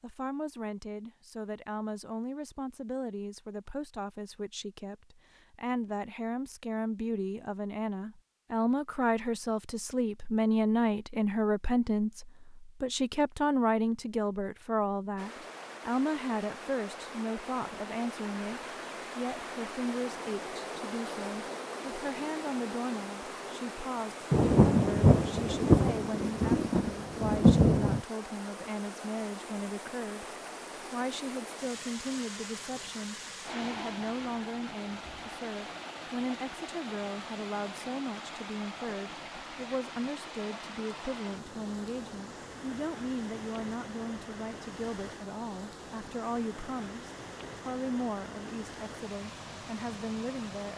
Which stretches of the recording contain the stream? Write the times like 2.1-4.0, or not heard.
15.2-50.7.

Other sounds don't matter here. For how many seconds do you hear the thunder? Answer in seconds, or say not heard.
4 s.